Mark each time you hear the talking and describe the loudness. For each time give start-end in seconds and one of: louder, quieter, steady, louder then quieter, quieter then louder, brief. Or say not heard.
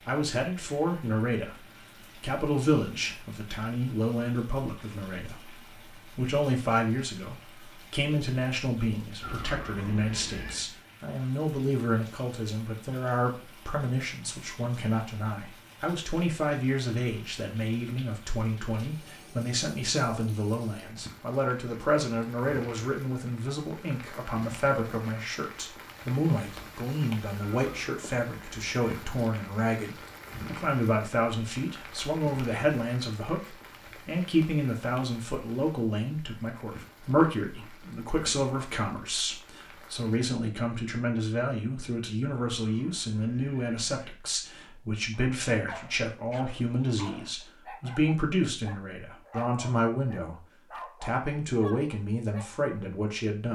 0.1-53.5 steady.